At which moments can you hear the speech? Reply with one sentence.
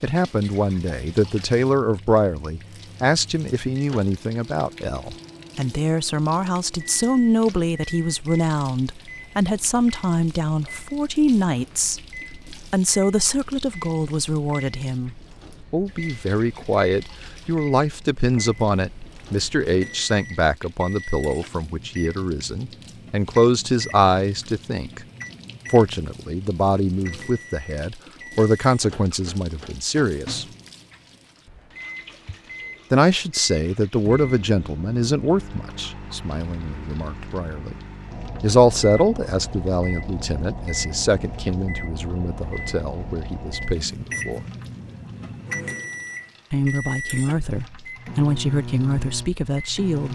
The speech can be heard from 0.0 to 12.0 s, from 12.7 to 25.0 s, from 25.7 to 30.4 s, from 32.9 to 37.8 s, from 38.4 to 44.4 s and from 46.5 to 50.0 s.